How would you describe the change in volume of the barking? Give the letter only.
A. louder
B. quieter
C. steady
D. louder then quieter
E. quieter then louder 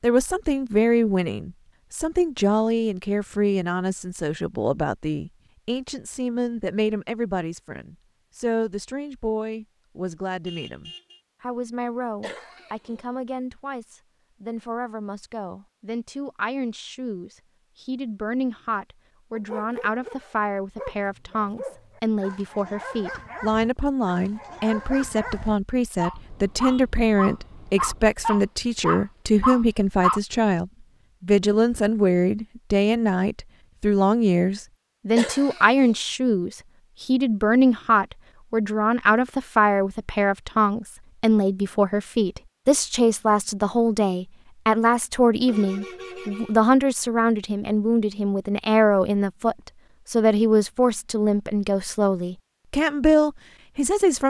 A.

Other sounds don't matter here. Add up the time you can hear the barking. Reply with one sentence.
You can hear the barking for 11 seconds altogether.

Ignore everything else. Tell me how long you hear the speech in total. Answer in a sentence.
The speech can be heard for 54 seconds in total.